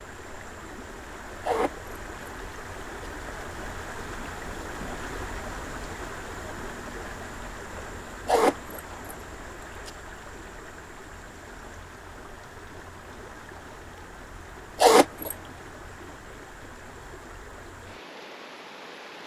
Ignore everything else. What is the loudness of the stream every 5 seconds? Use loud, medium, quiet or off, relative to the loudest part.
loud, loud, medium, medium.